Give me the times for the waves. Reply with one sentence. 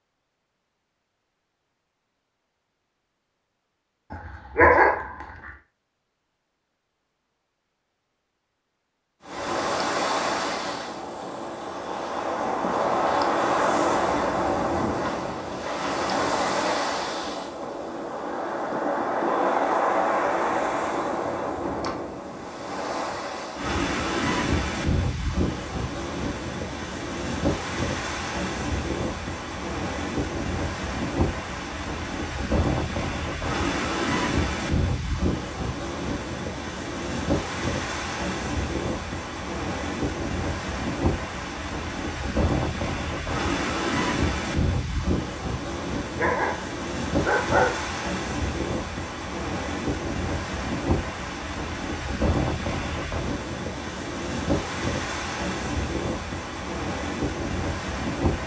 The waves can be heard from 9.2 to 58.4 s.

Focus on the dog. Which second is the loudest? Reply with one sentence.
The loudest moment of the dog is at 5 seconds.